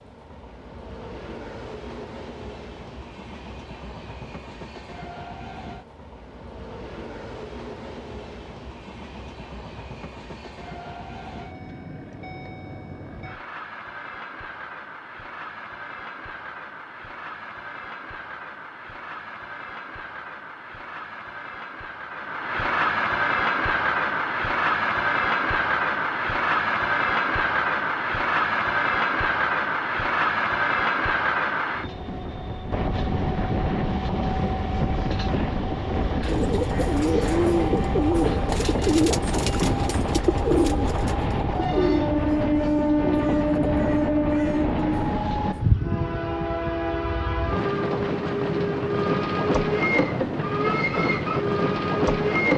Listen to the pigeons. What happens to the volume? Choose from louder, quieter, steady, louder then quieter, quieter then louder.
quieter.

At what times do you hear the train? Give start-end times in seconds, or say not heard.
0.0-52.5.